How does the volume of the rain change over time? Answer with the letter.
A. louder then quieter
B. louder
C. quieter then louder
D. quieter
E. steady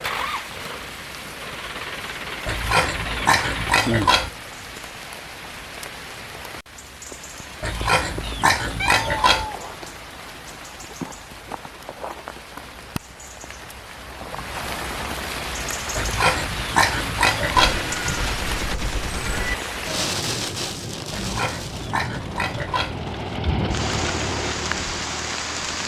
B.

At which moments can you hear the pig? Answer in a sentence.
The pig can be heard from 2.5 to 4.3 s, from 7.6 to 9.4 s, from 15.9 to 17.8 s and from 21.1 to 22.9 s.